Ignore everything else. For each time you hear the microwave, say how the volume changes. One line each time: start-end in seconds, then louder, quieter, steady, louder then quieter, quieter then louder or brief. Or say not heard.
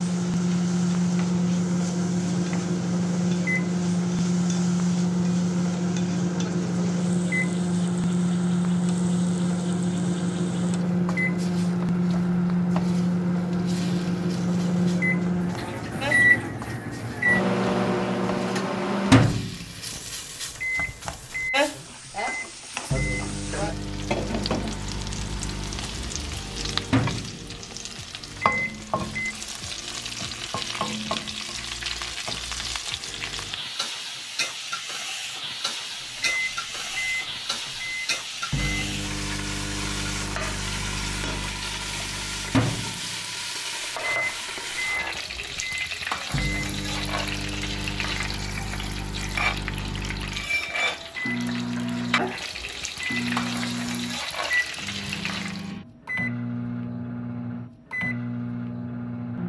0.0-29.4 quieter
36.1-59.4 steady.